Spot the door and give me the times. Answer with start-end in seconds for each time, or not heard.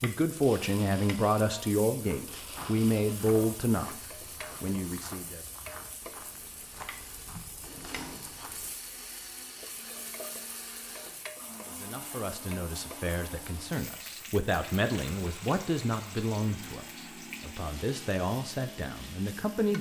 7.6-8.4.